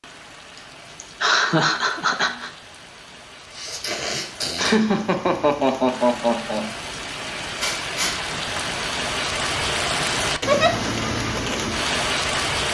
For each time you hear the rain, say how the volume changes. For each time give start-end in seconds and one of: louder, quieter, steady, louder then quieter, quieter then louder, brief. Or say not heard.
0.0-12.6 louder.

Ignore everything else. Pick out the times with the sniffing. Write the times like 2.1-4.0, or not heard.
3.5-4.8, 7.6-8.7.